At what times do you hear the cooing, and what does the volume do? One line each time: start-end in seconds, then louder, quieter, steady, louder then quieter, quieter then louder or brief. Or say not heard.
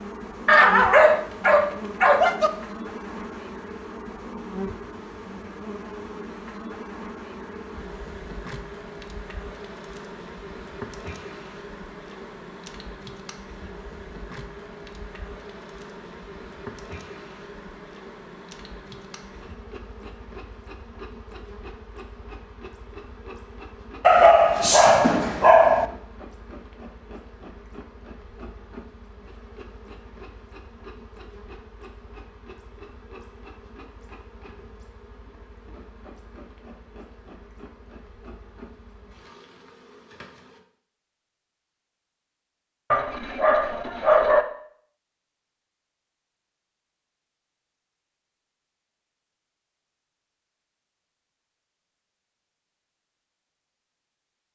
not heard.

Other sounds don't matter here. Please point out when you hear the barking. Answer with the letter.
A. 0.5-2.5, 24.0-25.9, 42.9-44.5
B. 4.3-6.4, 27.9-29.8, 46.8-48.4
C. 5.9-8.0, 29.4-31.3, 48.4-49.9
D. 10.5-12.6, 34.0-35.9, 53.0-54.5
A.